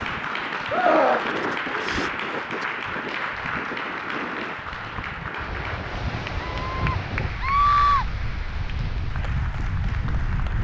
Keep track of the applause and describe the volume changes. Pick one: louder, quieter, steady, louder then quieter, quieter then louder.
quieter.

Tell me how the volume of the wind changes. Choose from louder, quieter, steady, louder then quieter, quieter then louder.
steady.